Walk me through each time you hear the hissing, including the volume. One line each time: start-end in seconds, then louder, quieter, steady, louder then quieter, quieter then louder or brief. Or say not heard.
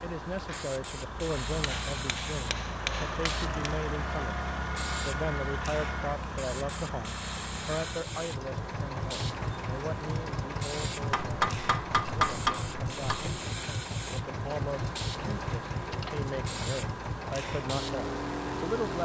0.0-19.0 steady.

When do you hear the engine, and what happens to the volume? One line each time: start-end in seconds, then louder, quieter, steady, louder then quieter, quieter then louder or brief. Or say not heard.
0.2-19.0 steady.